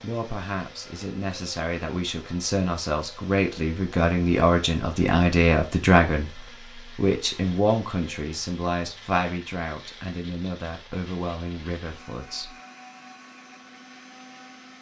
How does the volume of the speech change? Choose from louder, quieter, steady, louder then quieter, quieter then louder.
louder then quieter.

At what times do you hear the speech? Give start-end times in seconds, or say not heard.
0.0-12.6.